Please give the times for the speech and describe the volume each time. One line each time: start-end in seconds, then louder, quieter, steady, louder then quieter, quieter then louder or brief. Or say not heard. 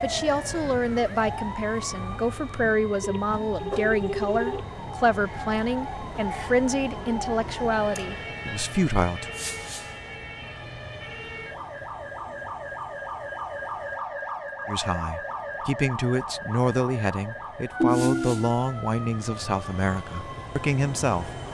0.0-9.3 steady
14.7-21.5 steady.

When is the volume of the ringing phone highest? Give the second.
18 s.